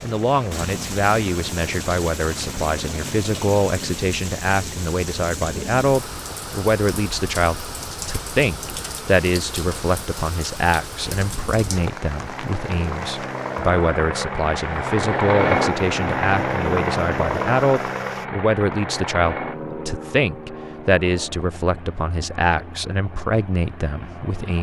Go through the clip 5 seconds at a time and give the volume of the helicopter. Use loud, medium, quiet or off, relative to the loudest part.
quiet, quiet, medium, loud, quiet.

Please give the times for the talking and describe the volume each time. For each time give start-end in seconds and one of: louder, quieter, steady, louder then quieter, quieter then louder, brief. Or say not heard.
0.0-24.5 steady.